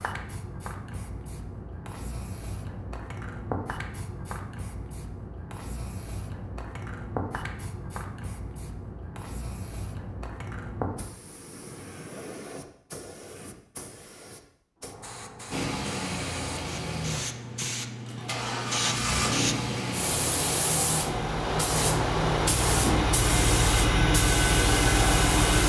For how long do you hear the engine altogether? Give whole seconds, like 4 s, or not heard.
10 s.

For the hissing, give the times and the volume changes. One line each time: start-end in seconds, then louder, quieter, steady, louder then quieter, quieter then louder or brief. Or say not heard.
0.0-25.6 louder.